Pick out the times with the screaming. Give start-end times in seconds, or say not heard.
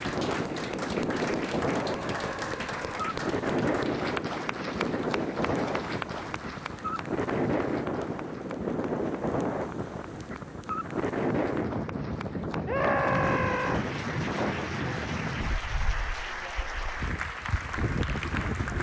1.9-3.0, 12.7-13.8.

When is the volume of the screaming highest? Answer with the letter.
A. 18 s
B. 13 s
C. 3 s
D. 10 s
B.